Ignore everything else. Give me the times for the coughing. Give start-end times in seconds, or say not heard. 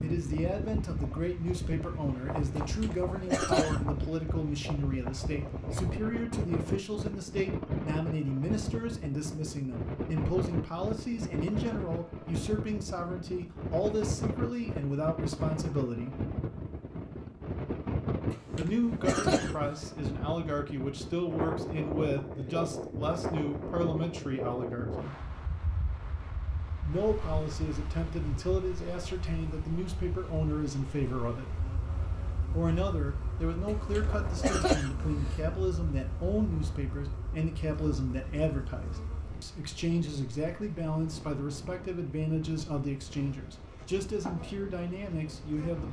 2.5-3.8, 18.3-19.6, 33.6-35.4.